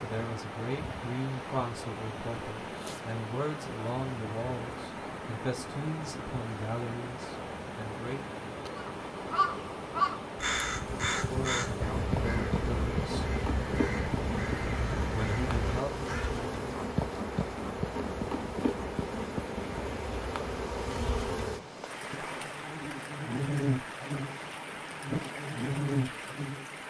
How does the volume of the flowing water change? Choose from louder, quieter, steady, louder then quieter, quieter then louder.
steady.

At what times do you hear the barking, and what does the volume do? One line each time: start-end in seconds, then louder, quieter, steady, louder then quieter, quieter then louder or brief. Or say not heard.
not heard.